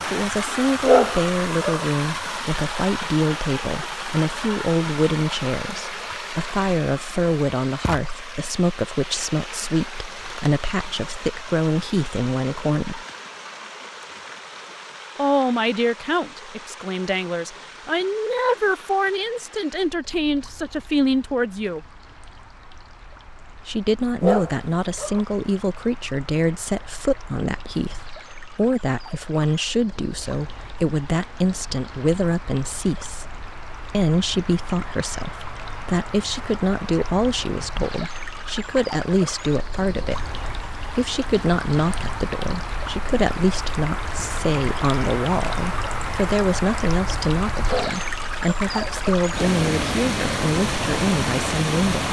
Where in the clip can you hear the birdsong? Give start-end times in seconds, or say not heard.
not heard.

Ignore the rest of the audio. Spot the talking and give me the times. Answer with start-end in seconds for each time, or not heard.
0.1-13.1, 15.2-21.8, 23.6-52.0.